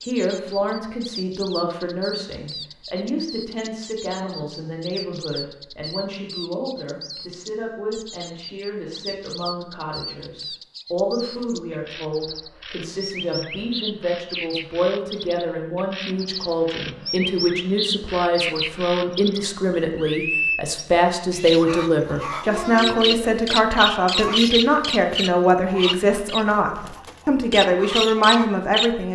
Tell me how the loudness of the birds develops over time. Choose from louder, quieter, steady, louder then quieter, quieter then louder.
louder.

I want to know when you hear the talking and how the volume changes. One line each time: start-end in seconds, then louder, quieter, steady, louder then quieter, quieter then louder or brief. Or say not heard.
0.0-29.1 louder.